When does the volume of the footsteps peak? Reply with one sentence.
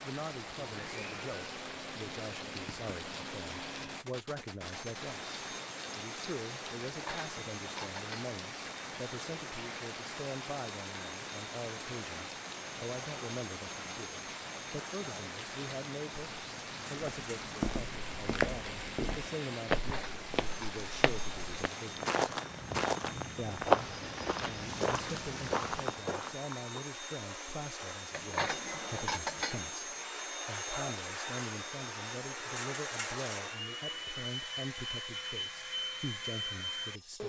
The loudest moment of the footsteps is at 24 seconds.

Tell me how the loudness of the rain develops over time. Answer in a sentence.
The volume of the rain stays about the same.